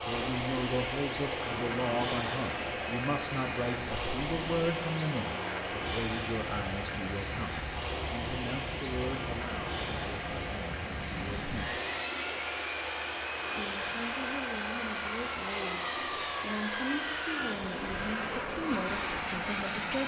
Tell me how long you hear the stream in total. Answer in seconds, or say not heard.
20 s.